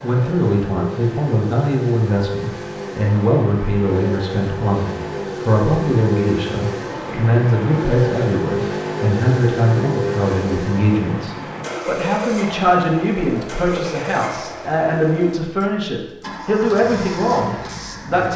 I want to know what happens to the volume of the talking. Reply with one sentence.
The volume of the talking stays about the same.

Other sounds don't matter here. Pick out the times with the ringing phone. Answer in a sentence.
The ringing phone can't be heard in this clip.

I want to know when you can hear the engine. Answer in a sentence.
You can hear the engine from 0.0 to 18.3 s.